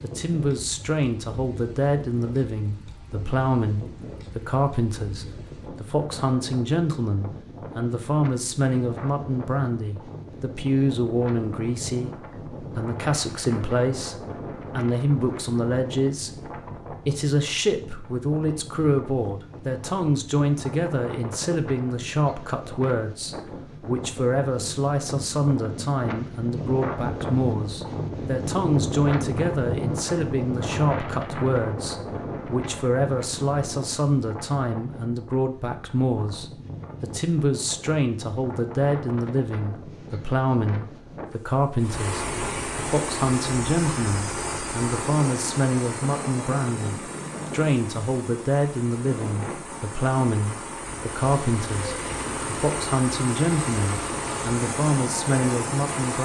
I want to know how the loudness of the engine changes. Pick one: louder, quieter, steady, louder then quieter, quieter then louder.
quieter then louder.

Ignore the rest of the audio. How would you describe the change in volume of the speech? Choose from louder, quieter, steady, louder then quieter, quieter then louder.
steady.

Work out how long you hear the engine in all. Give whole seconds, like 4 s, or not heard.
14 s.